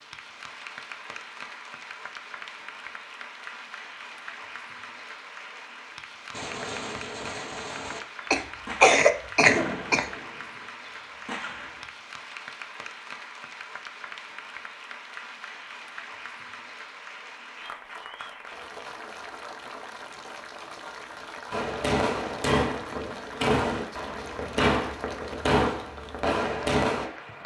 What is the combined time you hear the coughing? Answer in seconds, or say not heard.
2 s.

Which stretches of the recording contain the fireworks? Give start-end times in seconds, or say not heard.
6.3-11.9, 21.5-27.1.